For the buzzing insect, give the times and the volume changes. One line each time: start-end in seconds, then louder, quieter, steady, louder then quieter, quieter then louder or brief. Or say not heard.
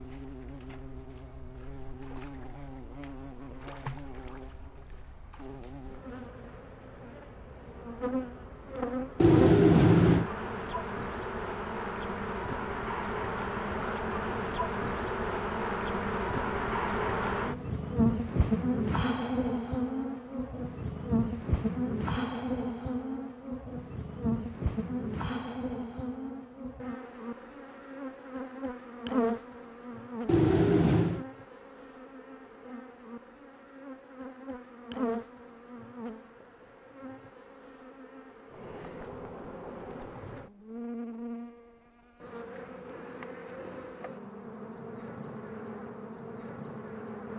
0.0-47.3 louder then quieter.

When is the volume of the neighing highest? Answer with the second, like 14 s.
10 s.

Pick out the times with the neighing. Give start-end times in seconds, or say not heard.
9.2-10.3, 30.2-31.2.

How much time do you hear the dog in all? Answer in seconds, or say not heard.
not heard.